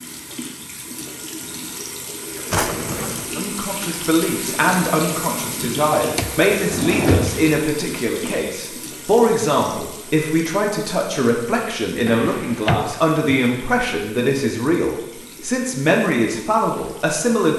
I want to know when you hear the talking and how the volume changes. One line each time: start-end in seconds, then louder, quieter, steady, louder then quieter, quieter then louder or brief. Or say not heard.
3.4-17.5 steady.